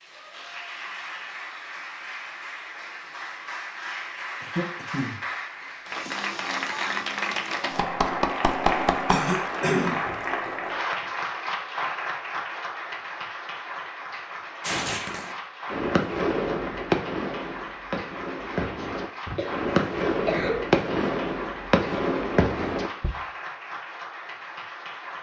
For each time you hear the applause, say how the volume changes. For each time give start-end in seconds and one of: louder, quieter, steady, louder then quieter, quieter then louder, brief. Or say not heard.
0.0-25.1 louder then quieter.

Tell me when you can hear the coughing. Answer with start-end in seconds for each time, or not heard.
4.4-6.1, 9.1-10.0, 18.8-20.8.